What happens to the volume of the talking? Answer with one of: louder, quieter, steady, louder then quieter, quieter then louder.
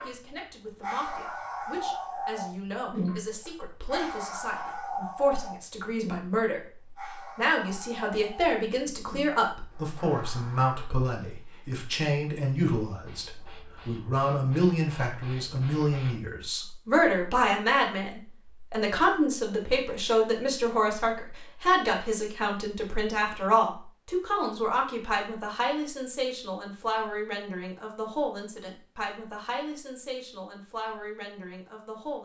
louder then quieter.